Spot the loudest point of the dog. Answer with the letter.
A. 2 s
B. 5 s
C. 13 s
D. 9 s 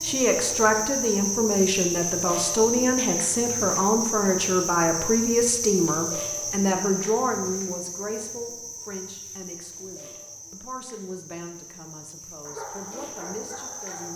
C.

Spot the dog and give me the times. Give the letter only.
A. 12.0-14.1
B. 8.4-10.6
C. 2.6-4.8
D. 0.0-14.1
A.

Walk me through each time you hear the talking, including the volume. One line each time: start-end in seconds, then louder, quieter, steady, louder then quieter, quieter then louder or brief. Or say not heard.
0.0-14.1 quieter.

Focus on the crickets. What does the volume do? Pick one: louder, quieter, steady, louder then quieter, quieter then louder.
quieter.